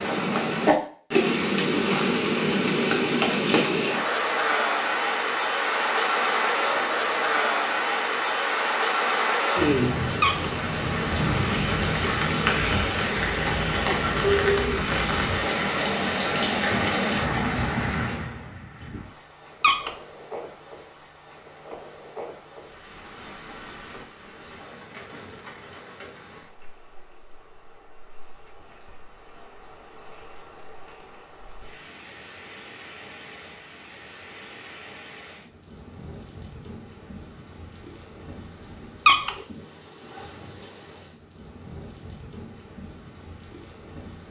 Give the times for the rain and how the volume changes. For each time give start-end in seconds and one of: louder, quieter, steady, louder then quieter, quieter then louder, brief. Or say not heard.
0.0-44.2 quieter.